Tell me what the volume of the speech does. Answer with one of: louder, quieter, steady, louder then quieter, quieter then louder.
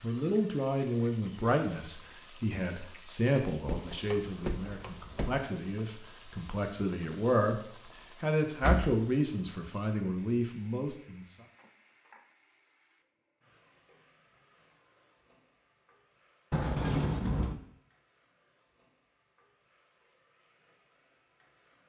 quieter then louder.